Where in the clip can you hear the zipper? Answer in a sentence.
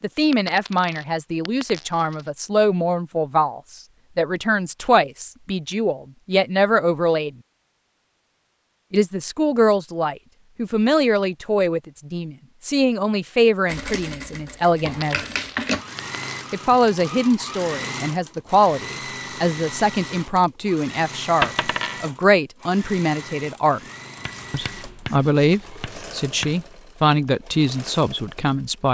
The zipper can't be heard in this clip.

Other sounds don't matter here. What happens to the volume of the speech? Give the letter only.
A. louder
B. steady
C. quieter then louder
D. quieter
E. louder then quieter
B.